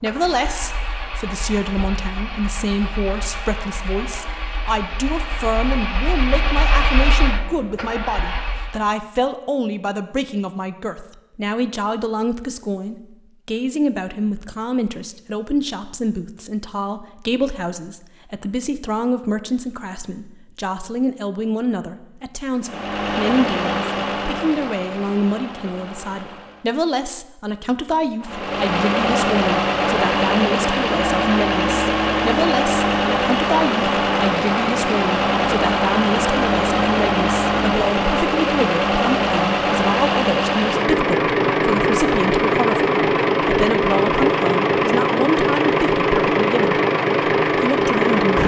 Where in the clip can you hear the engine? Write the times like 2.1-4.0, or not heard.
0.0-8.9, 22.6-26.8, 28.2-48.4.